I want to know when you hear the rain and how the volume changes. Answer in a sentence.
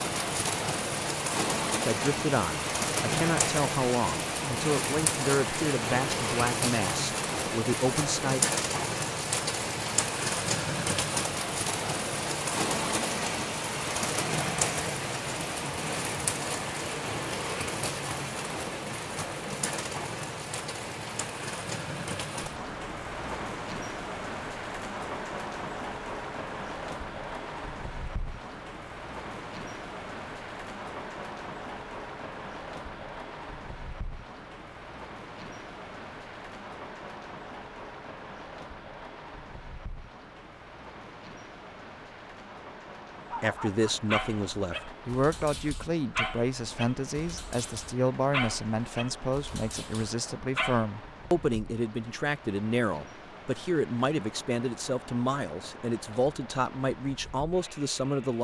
The rain can be heard from 0.0 to 58.3 s, getting quieter.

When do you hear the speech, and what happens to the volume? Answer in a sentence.
You can hear the speech from 1.9 to 8.4 s, at a steady volume; and from 43.4 to 58.3 s, at a steady volume.